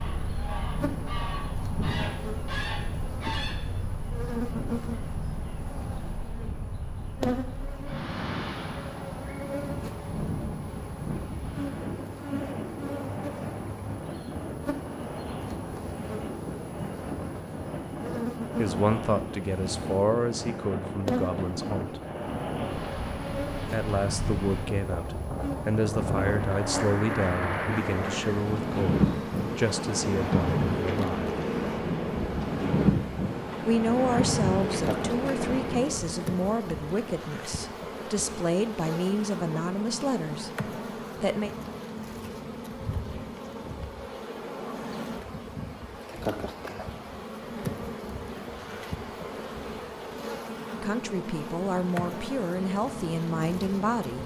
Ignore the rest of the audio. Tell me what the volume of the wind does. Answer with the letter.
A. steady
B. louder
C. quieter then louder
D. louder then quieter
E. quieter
B.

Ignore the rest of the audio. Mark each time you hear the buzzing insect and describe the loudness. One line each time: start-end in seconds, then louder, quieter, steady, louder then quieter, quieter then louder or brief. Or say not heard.
0.0-54.2 steady.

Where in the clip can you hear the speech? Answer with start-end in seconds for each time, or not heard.
18.6-21.9, 23.7-31.2, 33.6-41.5, 50.8-54.2.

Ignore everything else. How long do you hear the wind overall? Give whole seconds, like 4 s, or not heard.
36 s.